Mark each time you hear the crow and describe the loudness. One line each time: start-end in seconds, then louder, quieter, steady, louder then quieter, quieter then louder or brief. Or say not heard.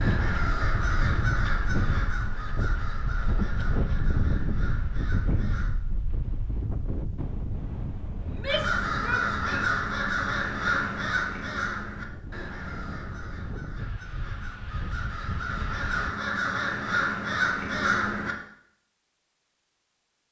0.0-5.7 quieter
8.4-18.4 quieter then louder.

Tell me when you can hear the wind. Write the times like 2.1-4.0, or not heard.
0.0-16.1.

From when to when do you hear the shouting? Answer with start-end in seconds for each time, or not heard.
8.2-9.8.